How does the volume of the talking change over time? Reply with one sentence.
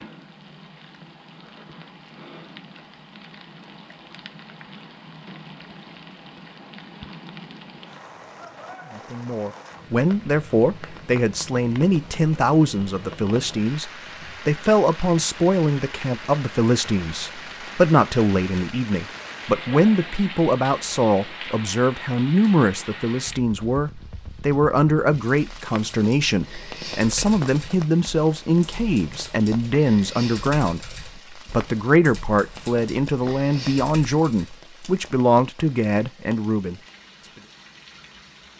The volume of the talking stays about the same.